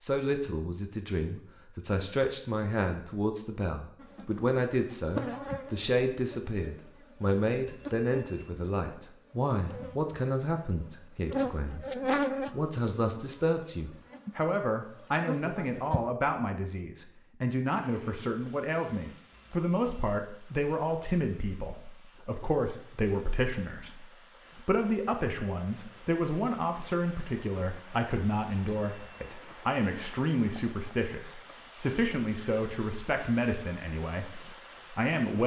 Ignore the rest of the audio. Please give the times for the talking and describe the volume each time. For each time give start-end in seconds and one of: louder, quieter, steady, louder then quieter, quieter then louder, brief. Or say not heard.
0.0-35.4 steady.